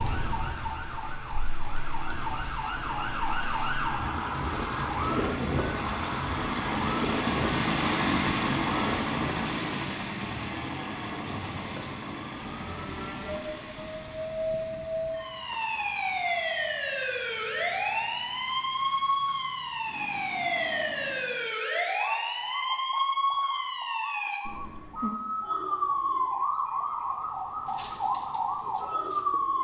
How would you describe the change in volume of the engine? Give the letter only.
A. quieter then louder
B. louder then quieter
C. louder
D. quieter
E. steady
B.